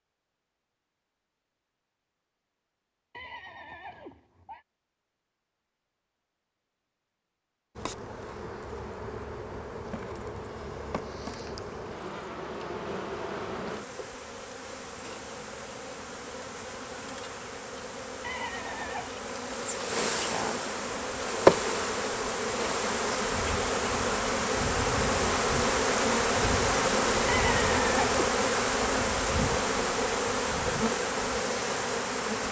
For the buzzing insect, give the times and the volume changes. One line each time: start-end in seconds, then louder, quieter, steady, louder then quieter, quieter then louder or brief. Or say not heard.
7.8-32.4 louder.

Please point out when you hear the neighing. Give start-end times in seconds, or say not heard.
3.1-4.7, 18.2-19.1, 27.2-28.1.